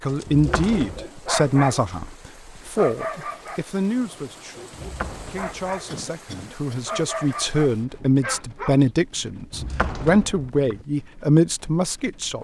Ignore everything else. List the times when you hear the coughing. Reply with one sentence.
You can hear the coughing from 5.8 to 7.0 s.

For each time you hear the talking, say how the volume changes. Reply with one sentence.
The talking can be heard from 0.0 to 12.3 s, getting quieter then louder.